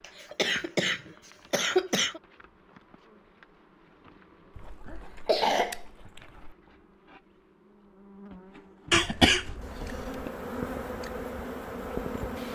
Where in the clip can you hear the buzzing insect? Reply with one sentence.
You can hear the buzzing insect from 0.0 to 12.4 s.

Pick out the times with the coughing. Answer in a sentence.
You can hear the coughing from 0.0 to 2.2 s, from 4.5 to 6.5 s and from 8.9 to 10.3 s.